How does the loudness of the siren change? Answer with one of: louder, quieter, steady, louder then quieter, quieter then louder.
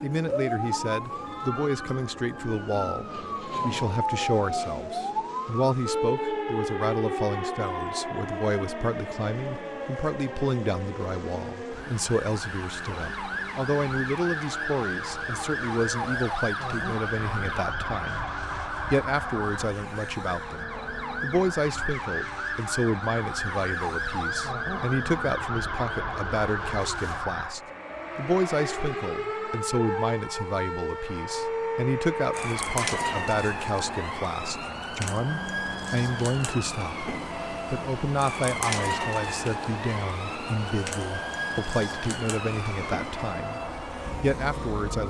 steady.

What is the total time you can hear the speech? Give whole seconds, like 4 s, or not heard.
45 s.